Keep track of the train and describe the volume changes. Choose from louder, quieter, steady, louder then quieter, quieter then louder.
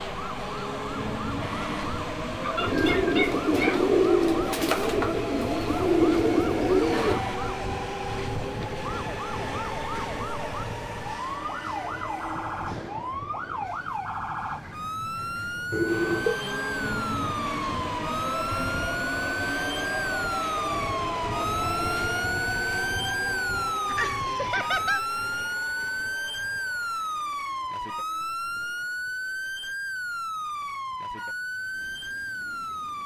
quieter.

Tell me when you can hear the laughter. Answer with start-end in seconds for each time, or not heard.
2.4-3.8, 23.9-25.1.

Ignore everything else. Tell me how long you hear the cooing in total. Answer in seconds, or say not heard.
5 s.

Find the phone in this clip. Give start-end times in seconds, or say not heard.
15.7-16.4.